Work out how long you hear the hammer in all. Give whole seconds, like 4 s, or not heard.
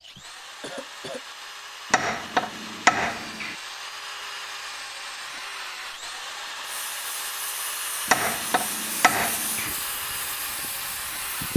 3 s.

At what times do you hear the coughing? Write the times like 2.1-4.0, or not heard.
0.1-1.2.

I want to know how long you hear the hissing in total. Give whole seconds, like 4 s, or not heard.
5 s.